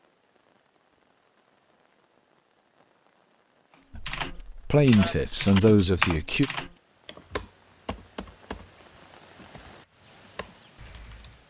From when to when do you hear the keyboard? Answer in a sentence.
You can hear the keyboard from 4.0 to 11.4 s.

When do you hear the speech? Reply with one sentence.
You can hear the speech from 4.0 to 6.5 s.